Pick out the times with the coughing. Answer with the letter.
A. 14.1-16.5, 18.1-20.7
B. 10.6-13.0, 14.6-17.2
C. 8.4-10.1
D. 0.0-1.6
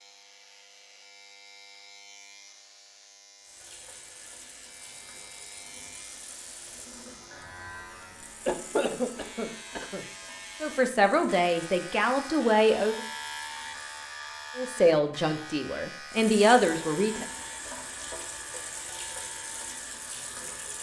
C.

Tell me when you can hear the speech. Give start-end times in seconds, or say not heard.
10.6-13.0, 14.6-17.2.